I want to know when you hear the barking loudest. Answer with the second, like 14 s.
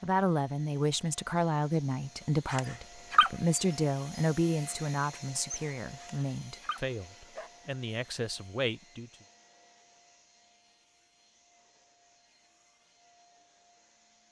3 s.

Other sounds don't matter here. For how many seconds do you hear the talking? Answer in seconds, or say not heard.
9 s.